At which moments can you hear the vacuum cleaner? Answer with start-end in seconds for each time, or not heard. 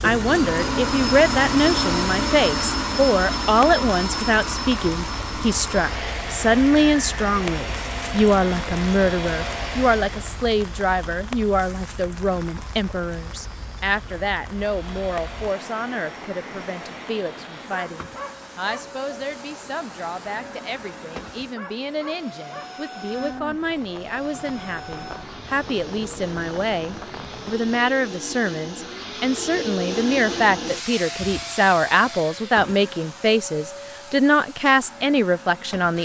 0.0-10.4, 14.6-36.0.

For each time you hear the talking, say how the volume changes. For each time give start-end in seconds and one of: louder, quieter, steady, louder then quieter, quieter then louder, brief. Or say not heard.
0.0-36.0 quieter then louder.